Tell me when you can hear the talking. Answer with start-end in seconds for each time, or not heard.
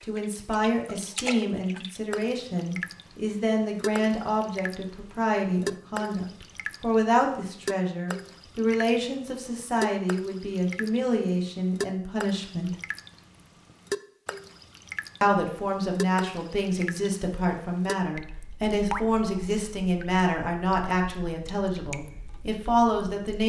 0.1-12.8, 15.2-23.4.